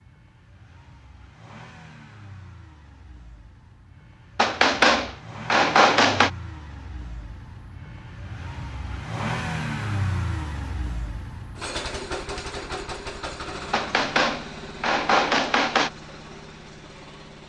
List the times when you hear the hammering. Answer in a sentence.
You can hear the hammering from 4.3 to 6.3 s and from 13.7 to 15.9 s.